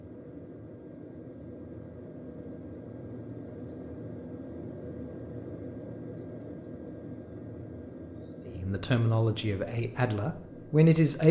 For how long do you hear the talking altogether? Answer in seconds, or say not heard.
3 s.